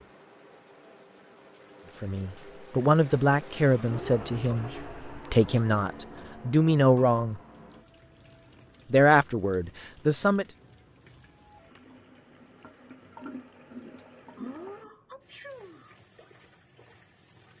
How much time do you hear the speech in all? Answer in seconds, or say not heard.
7 s.